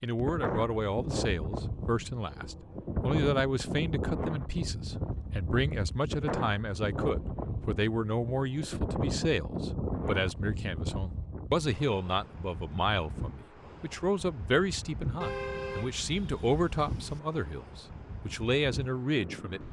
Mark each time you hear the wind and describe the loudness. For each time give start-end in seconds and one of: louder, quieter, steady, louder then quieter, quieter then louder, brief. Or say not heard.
0.0-19.6 quieter.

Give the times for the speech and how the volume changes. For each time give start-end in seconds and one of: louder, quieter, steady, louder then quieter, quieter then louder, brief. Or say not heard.
0.0-19.6 steady.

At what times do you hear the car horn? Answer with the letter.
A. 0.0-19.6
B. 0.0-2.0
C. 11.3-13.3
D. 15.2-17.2
D.